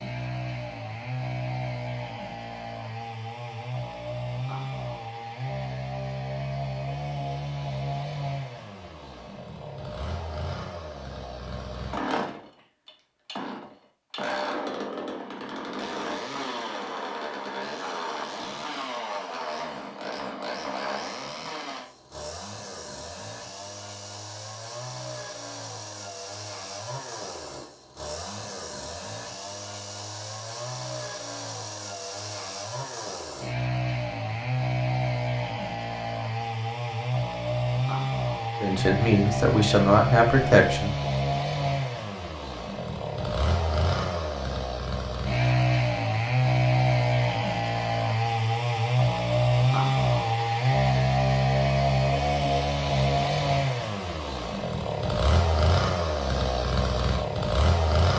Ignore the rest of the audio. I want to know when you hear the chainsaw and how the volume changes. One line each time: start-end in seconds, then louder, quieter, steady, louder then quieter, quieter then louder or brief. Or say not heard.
0.0-58.1 louder.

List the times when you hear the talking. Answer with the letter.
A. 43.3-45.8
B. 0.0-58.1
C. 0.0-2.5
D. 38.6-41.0
D.